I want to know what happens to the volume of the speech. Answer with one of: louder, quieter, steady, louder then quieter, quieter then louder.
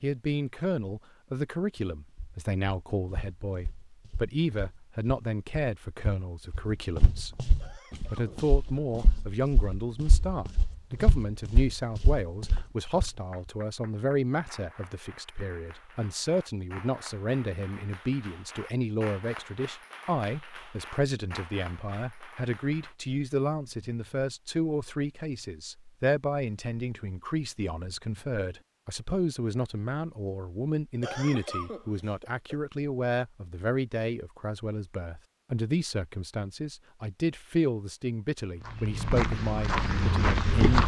steady.